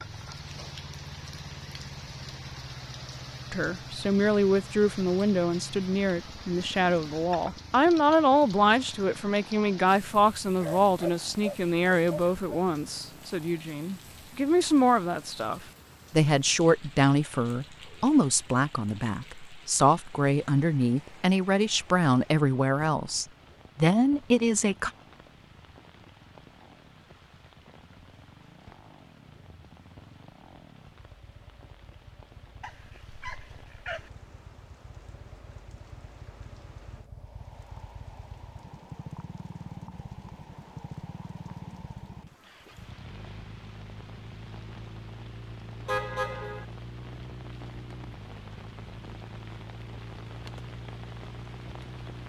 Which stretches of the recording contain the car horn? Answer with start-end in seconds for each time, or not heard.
45.9-46.6.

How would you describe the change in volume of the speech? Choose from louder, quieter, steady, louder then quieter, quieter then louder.
steady.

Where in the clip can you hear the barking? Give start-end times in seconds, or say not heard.
10.6-12.7, 32.6-34.1.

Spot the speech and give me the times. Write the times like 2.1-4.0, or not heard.
3.5-24.9.